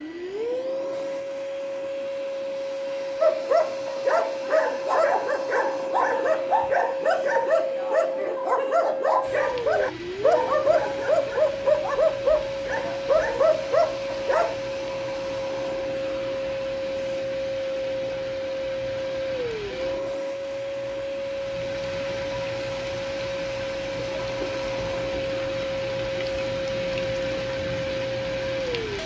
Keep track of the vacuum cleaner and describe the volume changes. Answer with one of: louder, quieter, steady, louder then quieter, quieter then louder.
steady.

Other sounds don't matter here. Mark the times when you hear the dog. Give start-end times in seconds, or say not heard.
3.2-14.6.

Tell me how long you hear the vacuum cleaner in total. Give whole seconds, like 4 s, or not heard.
29 s.